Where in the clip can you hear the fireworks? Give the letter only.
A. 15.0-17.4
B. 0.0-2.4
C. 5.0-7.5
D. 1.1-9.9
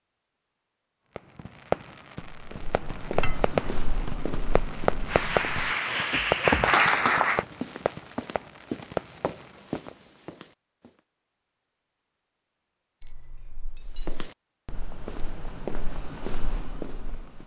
D.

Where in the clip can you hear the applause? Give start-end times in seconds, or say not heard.
5.0-7.5.